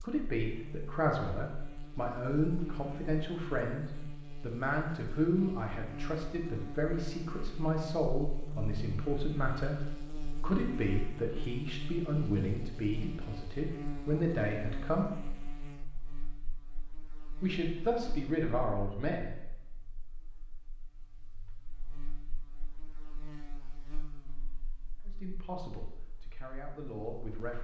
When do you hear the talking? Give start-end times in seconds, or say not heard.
0.0-15.1, 17.4-19.4, 25.1-27.5.